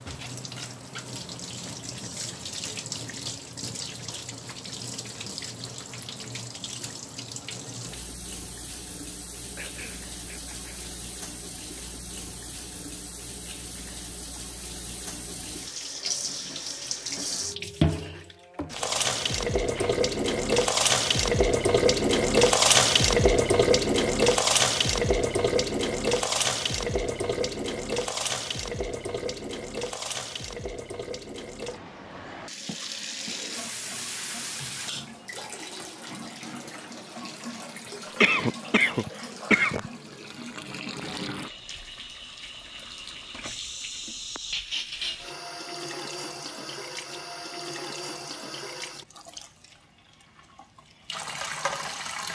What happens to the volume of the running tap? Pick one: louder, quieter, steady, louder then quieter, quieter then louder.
louder then quieter.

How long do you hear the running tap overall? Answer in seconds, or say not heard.
52 s.